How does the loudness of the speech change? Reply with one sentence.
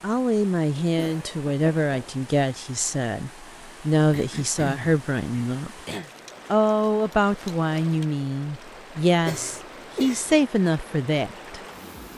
The volume of the speech stays about the same.